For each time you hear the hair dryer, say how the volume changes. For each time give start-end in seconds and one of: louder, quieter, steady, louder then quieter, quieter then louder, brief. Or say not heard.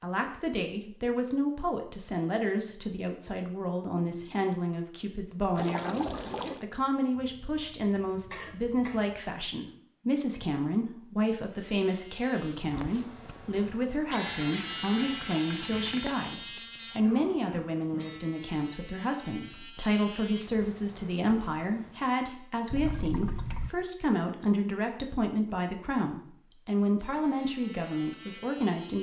not heard.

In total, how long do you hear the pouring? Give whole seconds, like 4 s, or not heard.
4 s.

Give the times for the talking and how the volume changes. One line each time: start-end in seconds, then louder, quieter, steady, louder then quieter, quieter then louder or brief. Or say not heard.
0.0-28.9 steady.